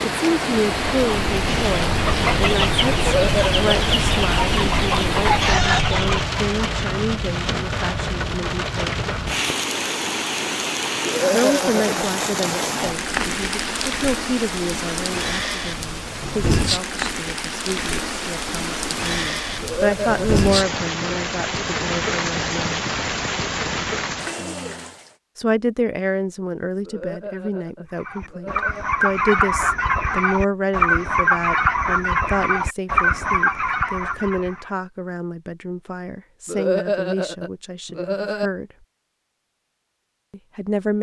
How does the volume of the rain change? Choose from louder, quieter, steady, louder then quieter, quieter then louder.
steady.